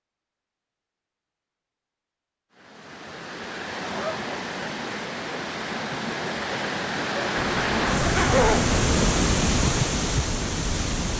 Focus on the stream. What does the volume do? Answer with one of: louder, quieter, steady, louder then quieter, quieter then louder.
louder.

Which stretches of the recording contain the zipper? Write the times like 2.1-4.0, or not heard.
7.5-8.8.